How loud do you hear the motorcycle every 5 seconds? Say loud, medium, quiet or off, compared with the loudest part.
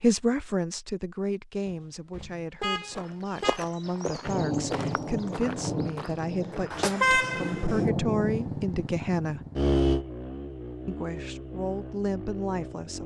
off, loud, medium.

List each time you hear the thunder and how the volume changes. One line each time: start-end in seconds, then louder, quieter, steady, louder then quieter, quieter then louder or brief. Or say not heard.
4.2-8.6 quieter then louder.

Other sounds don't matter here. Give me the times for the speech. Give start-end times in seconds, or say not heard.
0.0-9.4, 10.8-13.0.